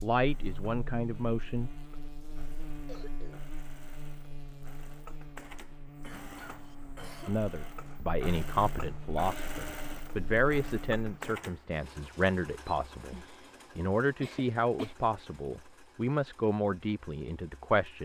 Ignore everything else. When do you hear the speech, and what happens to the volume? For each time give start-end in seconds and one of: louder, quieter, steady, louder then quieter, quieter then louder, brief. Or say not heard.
0.0-1.7 brief
7.2-17.9 steady.